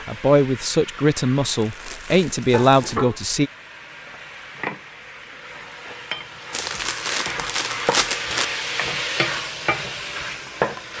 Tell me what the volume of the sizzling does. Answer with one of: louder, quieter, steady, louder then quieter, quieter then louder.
louder.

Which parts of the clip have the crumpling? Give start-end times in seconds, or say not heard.
1.5-3.0, 6.5-8.4.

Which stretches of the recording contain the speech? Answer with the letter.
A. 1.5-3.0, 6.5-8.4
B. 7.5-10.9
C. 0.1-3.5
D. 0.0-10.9
C.